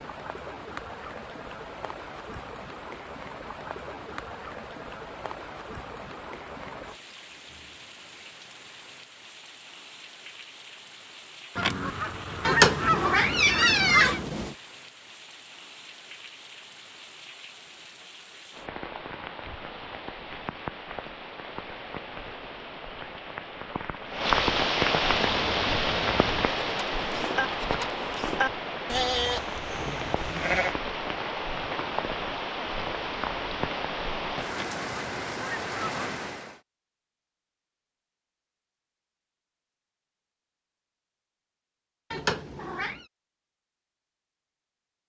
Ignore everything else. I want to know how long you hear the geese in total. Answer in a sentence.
You can hear the geese for 4 seconds altogether.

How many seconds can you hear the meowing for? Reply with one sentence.
The meowing can be heard for 3 seconds in total.